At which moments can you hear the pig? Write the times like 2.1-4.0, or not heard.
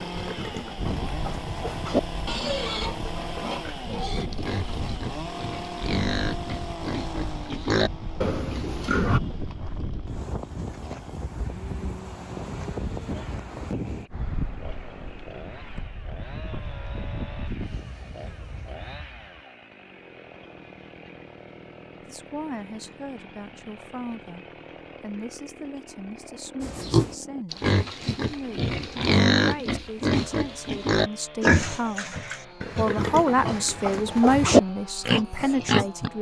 0.0-9.2, 26.6-36.1.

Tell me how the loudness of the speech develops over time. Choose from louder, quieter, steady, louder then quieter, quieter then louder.
louder.